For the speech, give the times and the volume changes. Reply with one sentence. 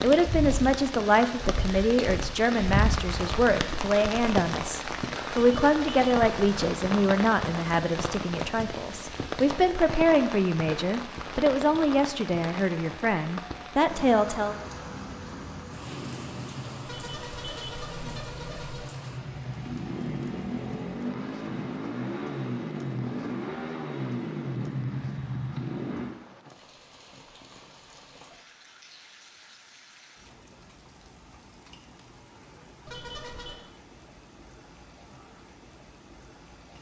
You can hear the speech from 0.0 to 14.6 s, at a steady volume.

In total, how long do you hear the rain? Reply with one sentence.
The rain can be heard for 37 seconds in total.